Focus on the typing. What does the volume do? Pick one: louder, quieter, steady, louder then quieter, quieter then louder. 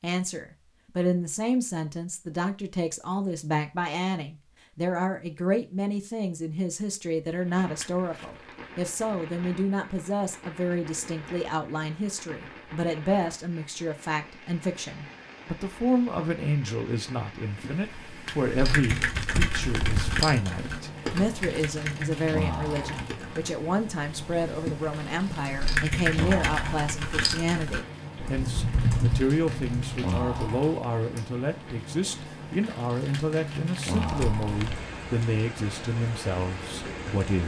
quieter then louder.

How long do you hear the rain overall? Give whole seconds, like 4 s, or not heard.
30 s.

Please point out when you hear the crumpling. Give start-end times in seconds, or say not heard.
7.8-8.5, 18.2-20.2, 33.1-34.9.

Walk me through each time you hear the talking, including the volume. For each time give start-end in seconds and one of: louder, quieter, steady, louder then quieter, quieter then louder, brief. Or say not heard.
0.0-37.4 steady.